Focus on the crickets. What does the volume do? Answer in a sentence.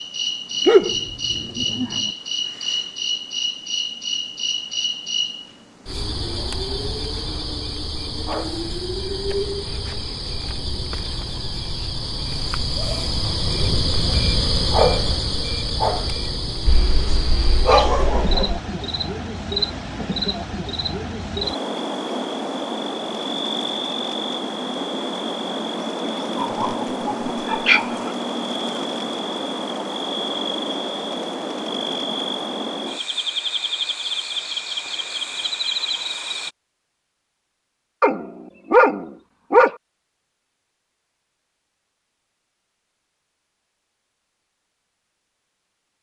The loudness of the crickets stays about the same.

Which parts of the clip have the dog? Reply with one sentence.
The dog can be heard from 0.7 to 2.1 s, from 16.6 to 18.6 s, from 26.4 to 28.1 s and from 38.0 to 39.8 s.